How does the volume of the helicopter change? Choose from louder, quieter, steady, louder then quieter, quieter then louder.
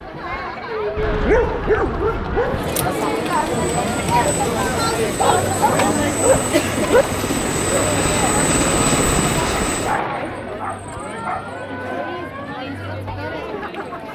louder.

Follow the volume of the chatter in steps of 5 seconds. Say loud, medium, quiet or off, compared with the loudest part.
loud, loud, medium.